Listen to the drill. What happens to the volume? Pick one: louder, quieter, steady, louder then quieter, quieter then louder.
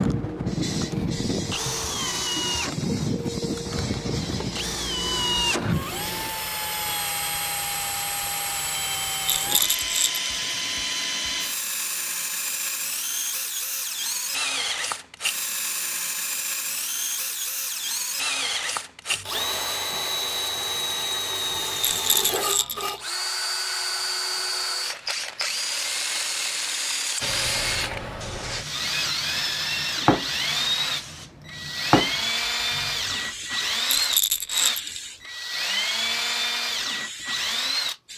steady.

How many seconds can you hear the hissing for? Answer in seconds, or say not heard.
17 s.